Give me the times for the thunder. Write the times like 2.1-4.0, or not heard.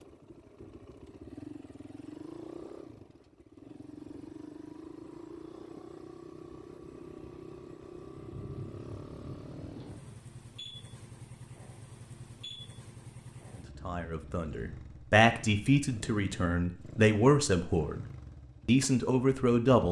8.2-10.2.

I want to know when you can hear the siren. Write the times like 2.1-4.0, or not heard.
not heard.